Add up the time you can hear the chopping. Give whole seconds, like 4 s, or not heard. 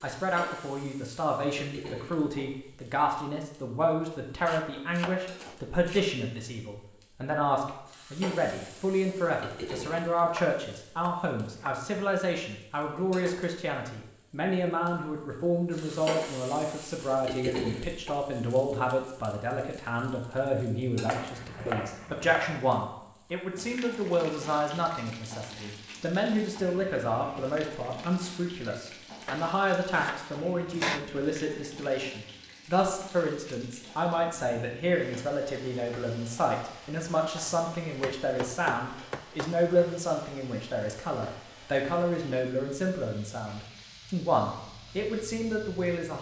8 s.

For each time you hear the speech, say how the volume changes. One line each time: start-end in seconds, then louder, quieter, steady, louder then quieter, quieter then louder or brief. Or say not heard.
0.0-46.1 steady.